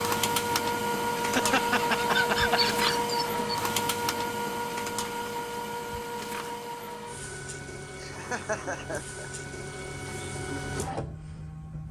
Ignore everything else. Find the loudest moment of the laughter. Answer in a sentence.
The loudest moment of the laughter is at 2 seconds.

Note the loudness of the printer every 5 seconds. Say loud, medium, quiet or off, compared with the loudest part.
loud, medium, medium.